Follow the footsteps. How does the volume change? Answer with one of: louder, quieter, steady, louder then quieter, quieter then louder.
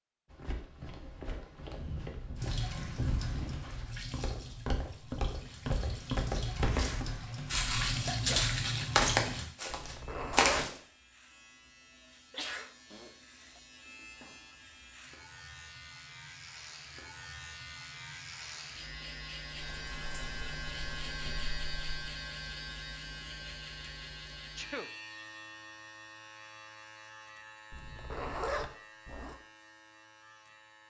louder.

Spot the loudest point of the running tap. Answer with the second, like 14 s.
8 s.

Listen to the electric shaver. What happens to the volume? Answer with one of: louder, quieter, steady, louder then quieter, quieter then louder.
louder then quieter.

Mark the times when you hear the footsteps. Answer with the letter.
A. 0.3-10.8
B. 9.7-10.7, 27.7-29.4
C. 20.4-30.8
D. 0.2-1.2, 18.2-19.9
A.